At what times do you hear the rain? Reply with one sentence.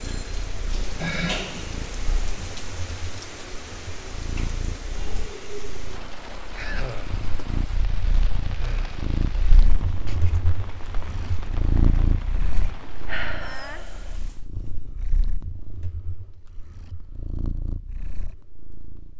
The rain can be heard from 0.0 to 14.5 s.